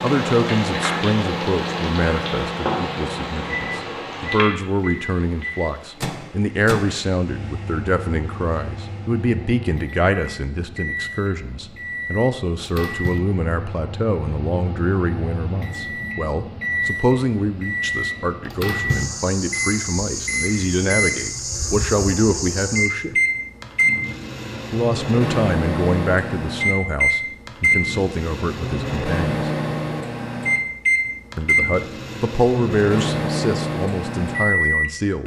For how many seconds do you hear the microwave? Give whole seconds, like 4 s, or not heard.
35 s.